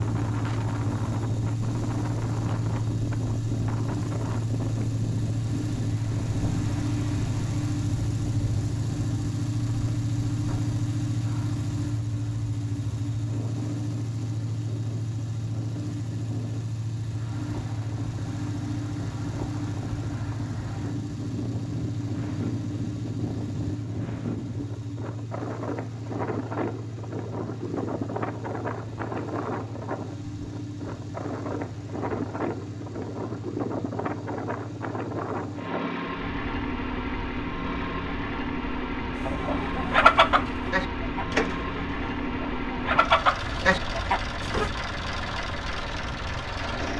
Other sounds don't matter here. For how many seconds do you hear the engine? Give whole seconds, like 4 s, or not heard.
47 s.